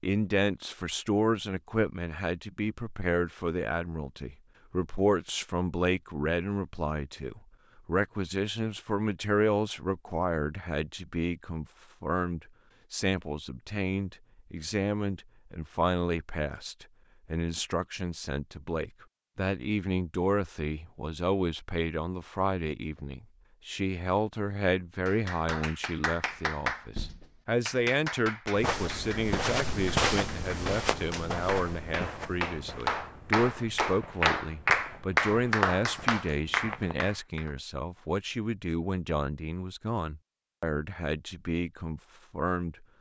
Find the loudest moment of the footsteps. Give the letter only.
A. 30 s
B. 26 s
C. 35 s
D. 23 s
A.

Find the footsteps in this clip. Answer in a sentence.
The footsteps can be heard from 28.6 to 37.1 s.